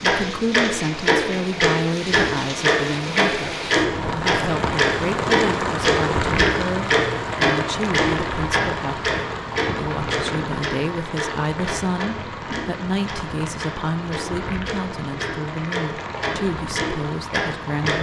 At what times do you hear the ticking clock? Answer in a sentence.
You can hear the ticking clock from 0.0 to 17.9 s.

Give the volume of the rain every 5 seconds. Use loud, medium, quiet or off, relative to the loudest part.
loud, loud, medium, medium.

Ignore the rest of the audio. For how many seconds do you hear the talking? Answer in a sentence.
You can hear the talking for 18 seconds altogether.